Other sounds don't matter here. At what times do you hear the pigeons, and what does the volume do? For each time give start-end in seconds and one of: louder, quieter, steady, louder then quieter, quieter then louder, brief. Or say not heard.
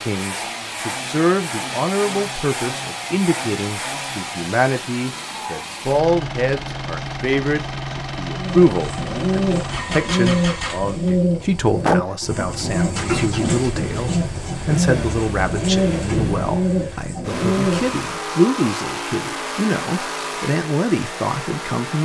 8.3-18.2 steady.